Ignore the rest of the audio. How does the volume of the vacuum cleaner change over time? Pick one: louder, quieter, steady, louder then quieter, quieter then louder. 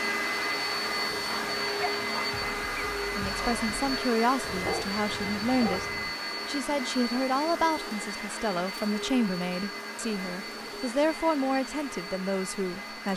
quieter.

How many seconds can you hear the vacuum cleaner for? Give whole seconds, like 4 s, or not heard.
13 s.